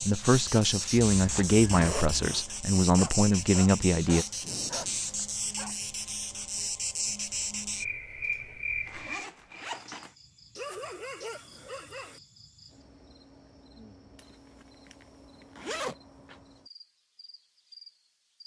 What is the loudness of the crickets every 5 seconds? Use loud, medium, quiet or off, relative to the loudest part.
loud, loud, quiet, quiet.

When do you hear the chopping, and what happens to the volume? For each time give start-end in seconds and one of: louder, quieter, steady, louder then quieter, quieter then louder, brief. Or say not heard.
not heard.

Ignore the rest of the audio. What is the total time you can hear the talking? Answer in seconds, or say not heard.
4 s.